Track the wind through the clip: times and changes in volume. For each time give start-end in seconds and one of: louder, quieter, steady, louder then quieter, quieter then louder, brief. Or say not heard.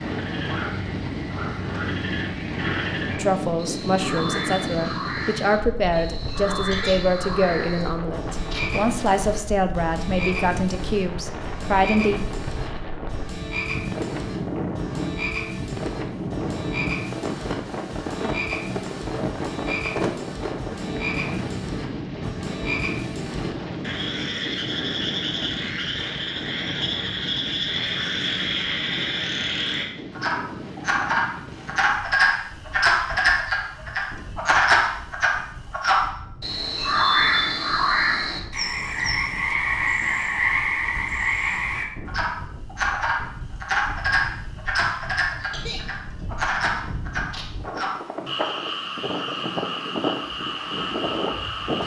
0.0-51.8 quieter then louder.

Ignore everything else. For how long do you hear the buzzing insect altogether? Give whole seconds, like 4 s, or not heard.
not heard.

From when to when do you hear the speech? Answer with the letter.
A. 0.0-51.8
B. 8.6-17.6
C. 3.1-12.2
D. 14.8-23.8
C.